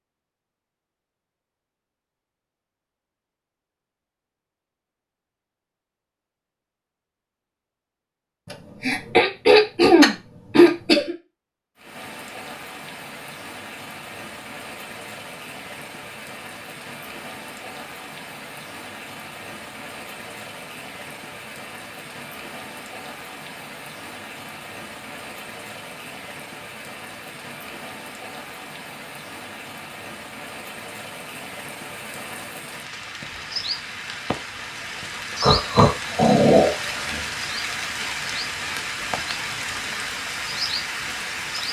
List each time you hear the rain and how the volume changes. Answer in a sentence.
The rain can be heard from 11.8 to 41.6 s, getting louder.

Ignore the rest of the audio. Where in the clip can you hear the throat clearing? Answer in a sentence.
The throat clearing can be heard from 8.5 to 11.2 s and from 35.4 to 37.2 s.